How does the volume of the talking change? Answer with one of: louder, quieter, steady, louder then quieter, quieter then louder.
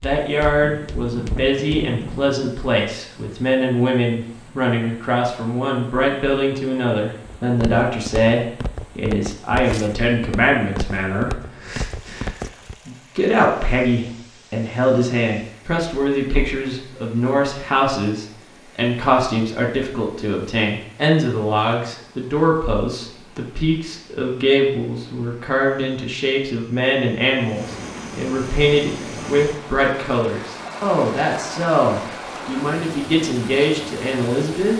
steady.